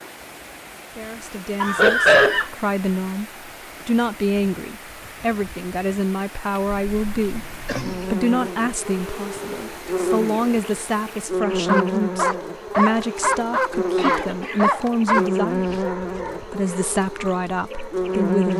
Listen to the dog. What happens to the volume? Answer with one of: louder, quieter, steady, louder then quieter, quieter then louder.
quieter.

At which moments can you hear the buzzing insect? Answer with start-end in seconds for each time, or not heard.
7.7-18.5.